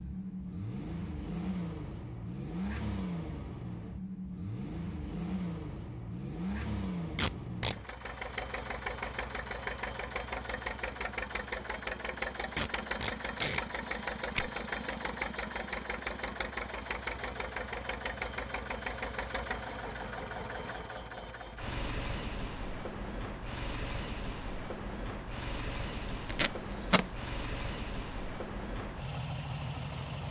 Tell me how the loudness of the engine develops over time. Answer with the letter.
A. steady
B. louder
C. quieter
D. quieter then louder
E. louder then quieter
A.